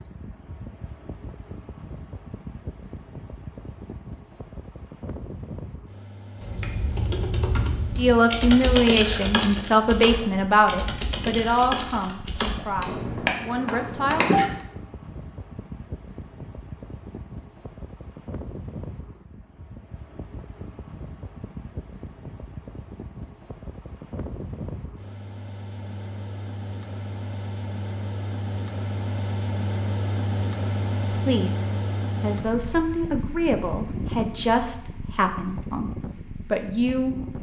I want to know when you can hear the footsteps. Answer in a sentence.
The footsteps can't be heard in this clip.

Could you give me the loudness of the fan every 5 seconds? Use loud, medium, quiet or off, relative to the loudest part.
medium, medium, medium, medium, medium, loud, loud, medium.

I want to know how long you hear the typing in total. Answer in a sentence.
The typing can be heard for 8 seconds in total.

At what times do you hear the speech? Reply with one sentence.
You can hear the speech from 8.0 to 14.2 s and from 31.1 to 37.3 s.